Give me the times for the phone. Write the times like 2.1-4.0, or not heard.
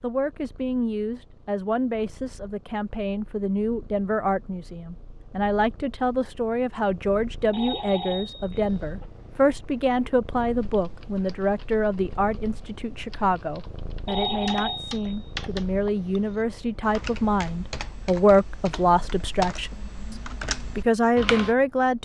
7.5-9.1, 14.1-15.2.